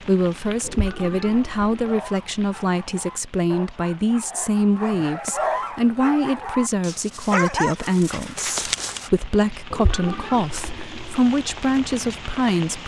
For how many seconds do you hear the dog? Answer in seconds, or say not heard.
8 s.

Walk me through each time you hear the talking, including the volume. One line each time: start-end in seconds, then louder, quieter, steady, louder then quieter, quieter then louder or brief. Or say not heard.
0.1-12.8 steady.